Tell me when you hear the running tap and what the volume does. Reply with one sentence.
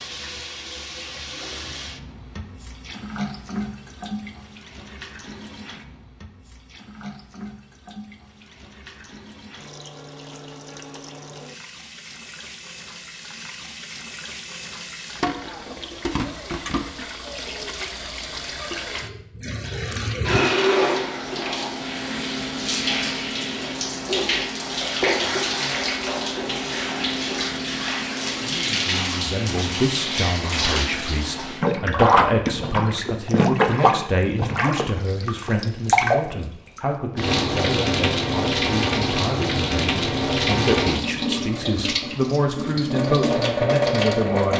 You can hear the running tap from 0.0 to 44.5 s, getting louder.